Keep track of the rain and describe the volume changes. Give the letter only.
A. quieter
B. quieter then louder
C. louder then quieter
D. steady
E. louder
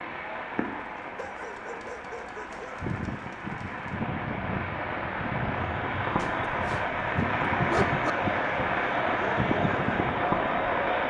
E.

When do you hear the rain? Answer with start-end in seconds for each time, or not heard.
0.0-11.0.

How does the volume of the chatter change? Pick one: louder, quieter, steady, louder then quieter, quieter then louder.
louder.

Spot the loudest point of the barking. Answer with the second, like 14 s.
8 s.